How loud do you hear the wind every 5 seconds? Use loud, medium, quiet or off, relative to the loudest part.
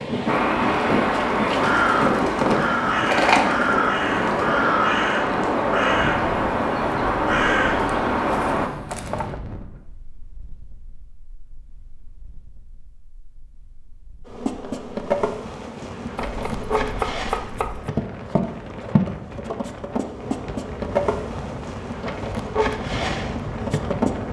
loud, medium, quiet, quiet, medium.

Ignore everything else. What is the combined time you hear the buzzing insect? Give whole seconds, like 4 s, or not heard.
10 s.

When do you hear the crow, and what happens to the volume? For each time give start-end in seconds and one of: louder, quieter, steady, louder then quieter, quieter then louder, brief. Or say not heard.
0.2-8.7 steady.